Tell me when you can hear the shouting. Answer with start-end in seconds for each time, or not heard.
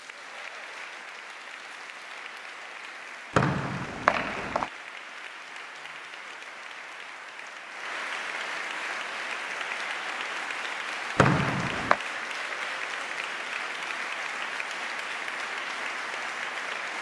not heard.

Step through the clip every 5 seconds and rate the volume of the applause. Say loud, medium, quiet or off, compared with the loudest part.
medium, loud, loud, loud.